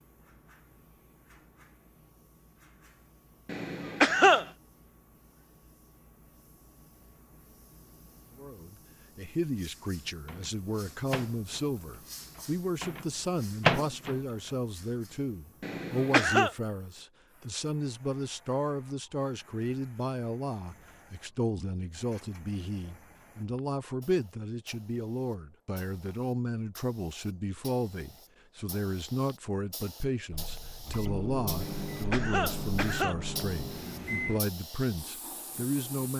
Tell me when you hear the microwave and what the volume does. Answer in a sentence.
You can hear the microwave from 10.2 to 14.5 s, getting quieter then louder; and from 30.3 to 34.4 s, at a steady volume.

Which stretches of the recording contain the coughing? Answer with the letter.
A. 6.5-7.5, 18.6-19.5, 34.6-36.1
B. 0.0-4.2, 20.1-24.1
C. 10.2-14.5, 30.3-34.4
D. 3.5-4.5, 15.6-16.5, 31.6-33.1
D.